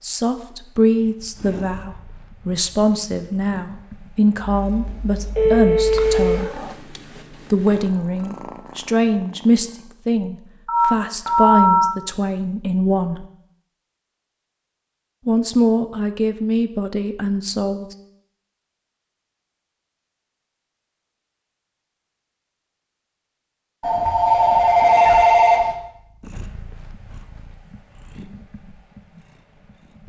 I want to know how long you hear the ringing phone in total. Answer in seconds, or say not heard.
5 s.